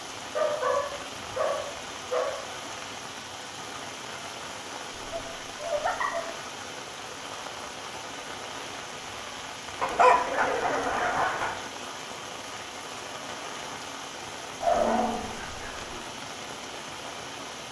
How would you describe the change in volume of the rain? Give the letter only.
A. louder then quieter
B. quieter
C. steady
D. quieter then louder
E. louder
C.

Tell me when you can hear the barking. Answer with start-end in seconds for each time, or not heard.
0.3-2.5, 5.0-6.3, 9.8-11.6, 14.6-15.9.